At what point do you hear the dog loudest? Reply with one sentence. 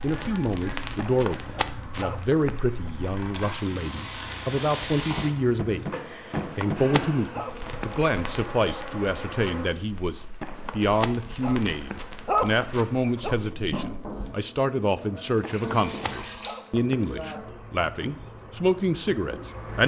The loudest moment of the dog is at 12 seconds.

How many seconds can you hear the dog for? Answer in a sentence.
You can hear the dog for 8 seconds altogether.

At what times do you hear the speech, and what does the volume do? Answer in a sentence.
You can hear the speech from 0.0 to 19.8 s, at a steady volume.